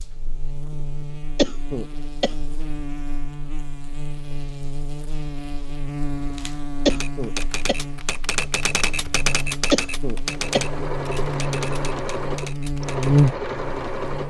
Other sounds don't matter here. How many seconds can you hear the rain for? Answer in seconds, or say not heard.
not heard.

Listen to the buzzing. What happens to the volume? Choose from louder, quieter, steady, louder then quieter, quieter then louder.
louder.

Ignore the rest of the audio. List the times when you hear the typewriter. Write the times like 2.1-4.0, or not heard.
6.2-13.3.